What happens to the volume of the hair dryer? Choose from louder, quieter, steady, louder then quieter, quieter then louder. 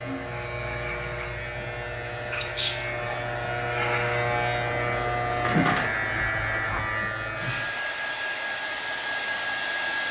louder.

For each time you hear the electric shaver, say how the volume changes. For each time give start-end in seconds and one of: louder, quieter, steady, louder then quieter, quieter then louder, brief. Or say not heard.
0.0-10.0 louder then quieter.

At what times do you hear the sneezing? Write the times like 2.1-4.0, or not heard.
2.3-3.0.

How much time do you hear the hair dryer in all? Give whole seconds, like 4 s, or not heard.
10 s.